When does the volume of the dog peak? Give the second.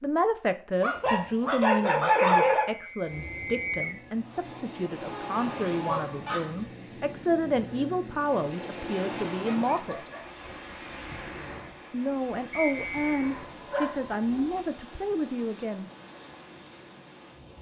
2 s.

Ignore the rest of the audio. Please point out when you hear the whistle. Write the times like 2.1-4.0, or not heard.
2.5-4.0, 12.5-13.2.